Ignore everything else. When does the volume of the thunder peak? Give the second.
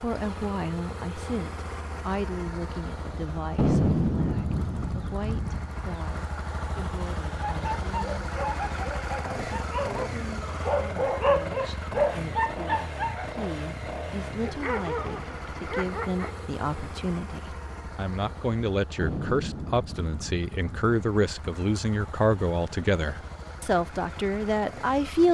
4 s.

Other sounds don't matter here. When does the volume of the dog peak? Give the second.
11 s.